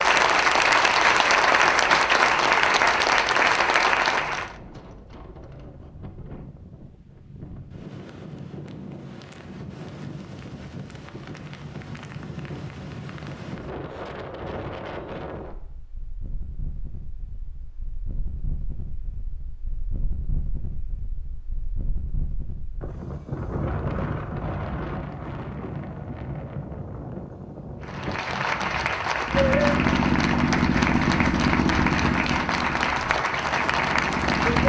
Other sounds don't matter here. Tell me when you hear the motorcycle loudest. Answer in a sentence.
The volume of the motorcycle peaks at 30 seconds.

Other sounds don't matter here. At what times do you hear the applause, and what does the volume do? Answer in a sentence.
The applause can be heard from 0.0 to 4.5 s, at a steady volume; and from 27.8 to 34.6 s, at a steady volume.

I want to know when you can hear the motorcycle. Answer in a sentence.
The motorcycle can be heard from 29.2 to 34.6 s.